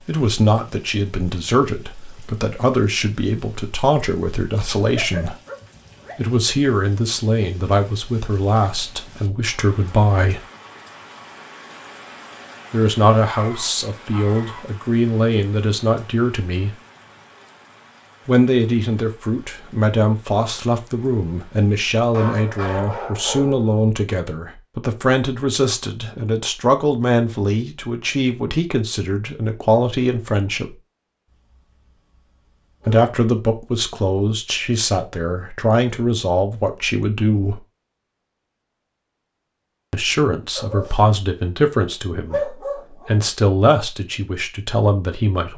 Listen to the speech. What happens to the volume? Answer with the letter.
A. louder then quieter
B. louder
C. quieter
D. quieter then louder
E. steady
E.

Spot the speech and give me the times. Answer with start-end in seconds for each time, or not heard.
0.1-5.3, 6.2-10.4, 12.7-16.8, 18.2-30.8, 32.9-37.6, 39.9-45.5.